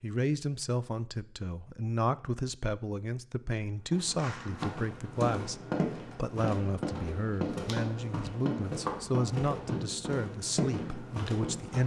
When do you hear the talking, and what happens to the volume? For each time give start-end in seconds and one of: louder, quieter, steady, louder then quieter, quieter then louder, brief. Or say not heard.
0.0-11.8 steady.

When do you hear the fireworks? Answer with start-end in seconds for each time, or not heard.
4.2-11.8.